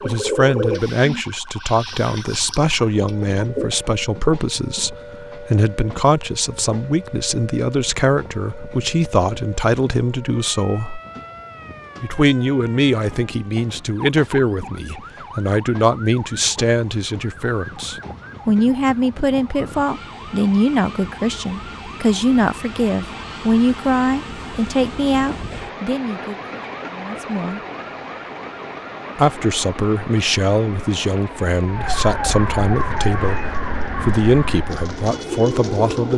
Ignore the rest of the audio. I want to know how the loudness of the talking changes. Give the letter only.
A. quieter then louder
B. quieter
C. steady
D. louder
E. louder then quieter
C.